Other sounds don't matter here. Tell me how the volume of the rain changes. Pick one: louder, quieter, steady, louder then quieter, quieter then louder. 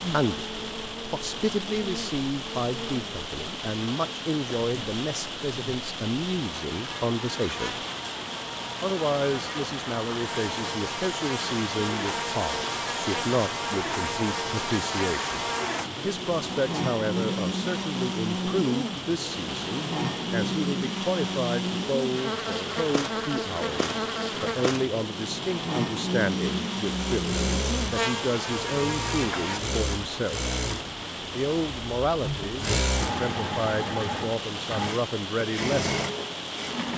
steady.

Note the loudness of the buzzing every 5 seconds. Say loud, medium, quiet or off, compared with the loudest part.
medium, medium, loud, loud, loud, loud, off, off.